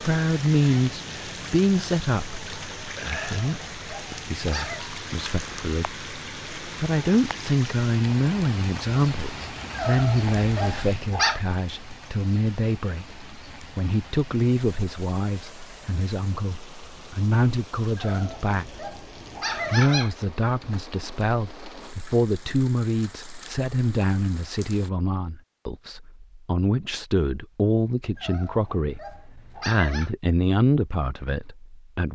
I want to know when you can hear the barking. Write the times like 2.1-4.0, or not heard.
3.0-4.8, 9.7-11.4, 17.9-20.1, 28.1-30.1.